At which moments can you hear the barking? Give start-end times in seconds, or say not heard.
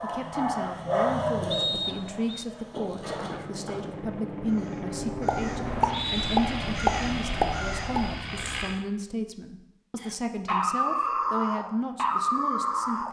0.0-3.9, 10.4-13.0.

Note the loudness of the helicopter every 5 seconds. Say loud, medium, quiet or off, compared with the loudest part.
loud, loud, off.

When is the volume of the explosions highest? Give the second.
7 s.